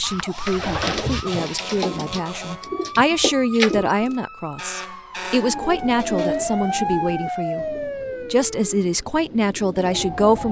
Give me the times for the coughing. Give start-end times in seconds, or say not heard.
not heard.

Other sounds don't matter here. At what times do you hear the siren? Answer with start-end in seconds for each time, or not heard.
0.0-10.4.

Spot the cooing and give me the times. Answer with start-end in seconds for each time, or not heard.
0.0-4.2, 5.2-10.4.